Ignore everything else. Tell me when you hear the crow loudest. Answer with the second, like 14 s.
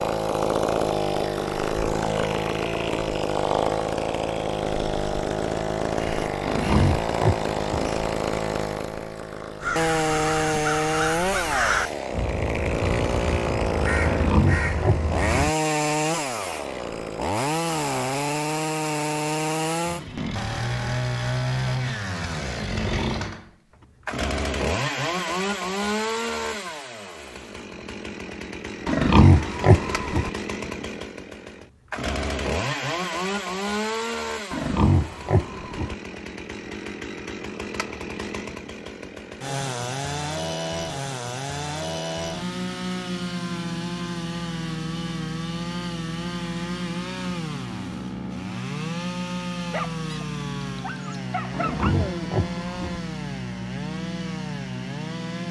12 s.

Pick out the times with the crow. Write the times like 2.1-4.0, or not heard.
9.6-15.5.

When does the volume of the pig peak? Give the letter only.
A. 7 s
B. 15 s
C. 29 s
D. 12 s
C.